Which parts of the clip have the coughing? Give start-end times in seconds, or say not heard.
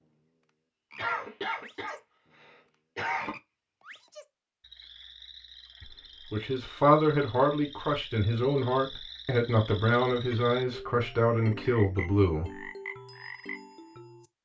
0.9-3.4.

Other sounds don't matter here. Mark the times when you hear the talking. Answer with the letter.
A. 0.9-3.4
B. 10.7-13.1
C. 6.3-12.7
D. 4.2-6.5
C.